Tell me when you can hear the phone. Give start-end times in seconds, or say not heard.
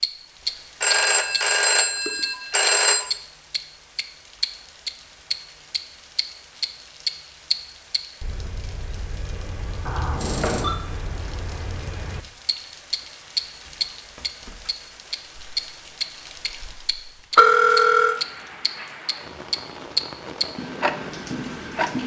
0.8-3.0, 9.8-10.8, 17.4-18.1.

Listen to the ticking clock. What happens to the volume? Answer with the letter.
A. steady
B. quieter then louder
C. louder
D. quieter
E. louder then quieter
B.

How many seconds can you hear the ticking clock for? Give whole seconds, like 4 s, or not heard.
22 s.